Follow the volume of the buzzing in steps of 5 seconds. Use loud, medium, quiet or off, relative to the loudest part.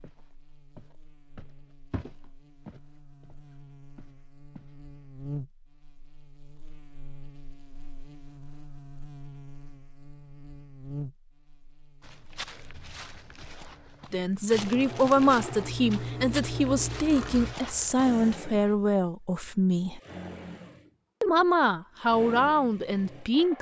medium, loud, loud, off, off.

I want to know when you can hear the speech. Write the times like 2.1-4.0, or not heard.
14.1-20.0, 21.2-23.5.